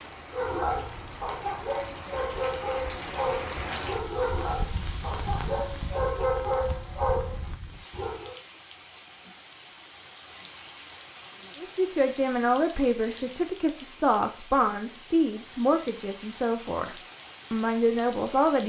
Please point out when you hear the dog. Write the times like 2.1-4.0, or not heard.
0.3-8.3.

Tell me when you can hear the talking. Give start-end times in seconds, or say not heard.
11.6-18.6.